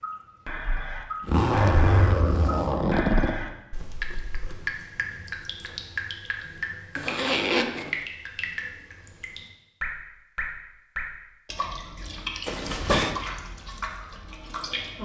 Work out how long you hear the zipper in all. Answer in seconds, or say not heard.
4 s.